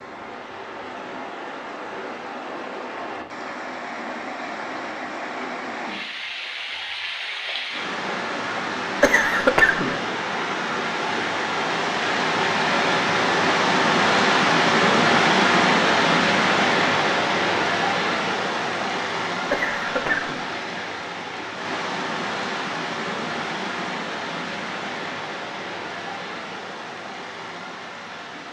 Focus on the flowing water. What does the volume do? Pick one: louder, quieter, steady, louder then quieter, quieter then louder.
louder then quieter.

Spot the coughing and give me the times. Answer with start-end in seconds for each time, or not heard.
9.0-9.9, 19.5-20.4.